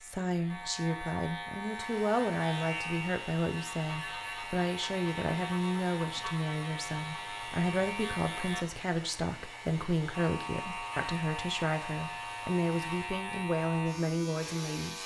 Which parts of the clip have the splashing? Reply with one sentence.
You can't hear the splashing here.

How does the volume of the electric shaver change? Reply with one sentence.
The loudness of the electric shaver stays about the same.